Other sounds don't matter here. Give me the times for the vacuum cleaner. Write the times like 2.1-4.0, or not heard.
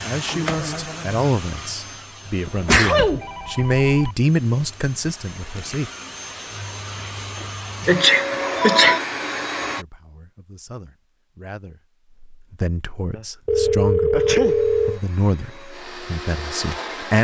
0.0-9.8, 14.4-17.1.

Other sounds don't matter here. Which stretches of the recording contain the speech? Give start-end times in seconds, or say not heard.
0.0-5.9, 9.8-11.8, 12.6-17.1.